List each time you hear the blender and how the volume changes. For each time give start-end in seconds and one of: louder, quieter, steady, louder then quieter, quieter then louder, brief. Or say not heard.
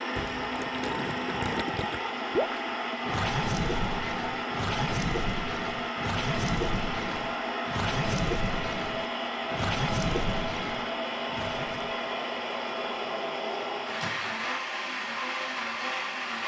0.0-16.4 steady.